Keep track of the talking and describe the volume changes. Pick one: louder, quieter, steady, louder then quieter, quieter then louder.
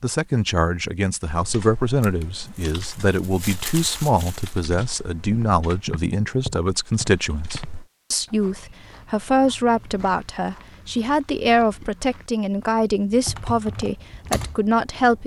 steady.